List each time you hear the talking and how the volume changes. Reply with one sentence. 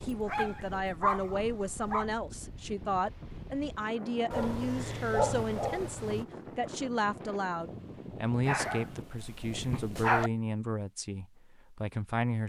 You can hear the talking from 0.0 to 12.4 s, at a steady volume.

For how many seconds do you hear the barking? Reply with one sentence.
The barking can be heard for 6 seconds in total.